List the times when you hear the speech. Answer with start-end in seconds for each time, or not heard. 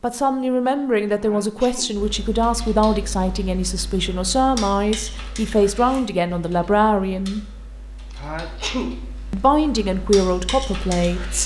0.0-7.5, 9.3-11.4.